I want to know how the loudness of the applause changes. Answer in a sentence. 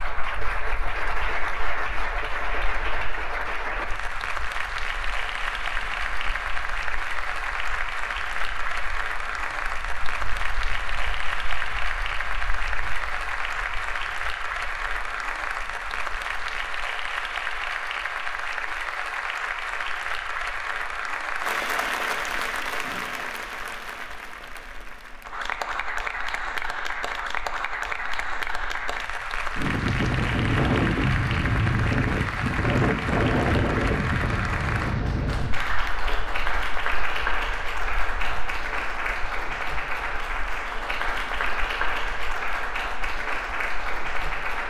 The volume of the applause stays about the same.